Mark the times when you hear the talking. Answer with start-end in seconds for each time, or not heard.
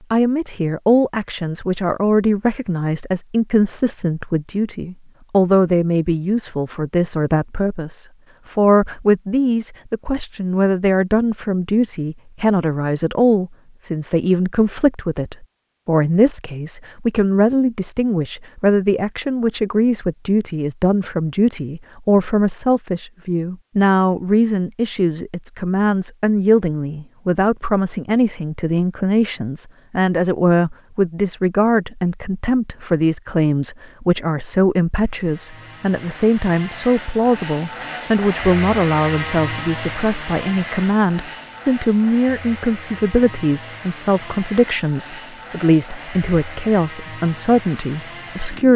0.1-48.7.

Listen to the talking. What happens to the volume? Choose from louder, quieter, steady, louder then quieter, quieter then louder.
steady.